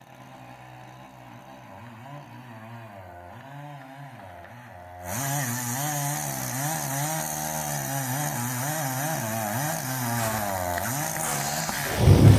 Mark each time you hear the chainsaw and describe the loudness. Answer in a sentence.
The chainsaw can be heard from 0.0 to 12.3 s, getting louder.